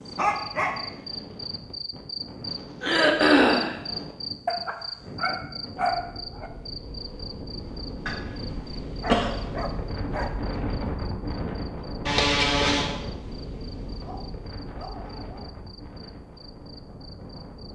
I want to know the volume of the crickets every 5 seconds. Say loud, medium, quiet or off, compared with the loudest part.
loud, medium, quiet, quiet.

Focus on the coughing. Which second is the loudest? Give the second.
3 s.